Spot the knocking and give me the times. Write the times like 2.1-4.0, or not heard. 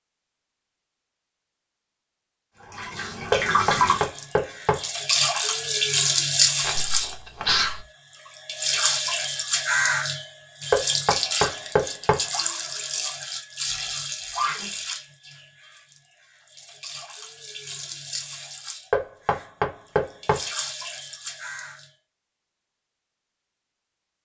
3.3-4.8, 10.7-12.2, 18.9-20.4.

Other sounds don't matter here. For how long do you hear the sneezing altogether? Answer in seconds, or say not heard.
2 s.